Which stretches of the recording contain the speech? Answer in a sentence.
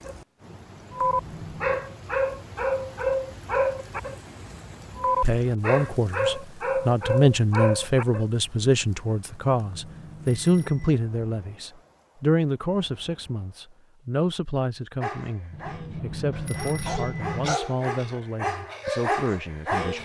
The speech can be heard from 5.2 to 19.9 s.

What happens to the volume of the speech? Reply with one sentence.
The volume of the speech goes down.